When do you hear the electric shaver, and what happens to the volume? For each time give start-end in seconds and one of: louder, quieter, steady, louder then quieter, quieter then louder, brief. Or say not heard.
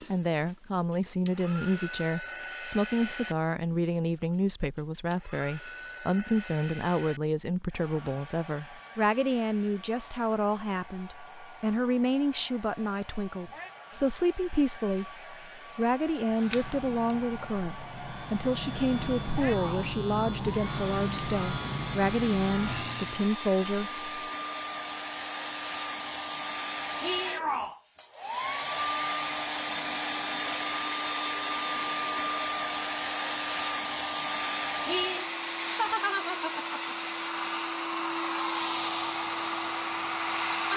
16.3-23.3 louder.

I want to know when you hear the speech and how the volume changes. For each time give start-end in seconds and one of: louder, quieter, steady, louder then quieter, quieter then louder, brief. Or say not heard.
0.0-24.1 steady.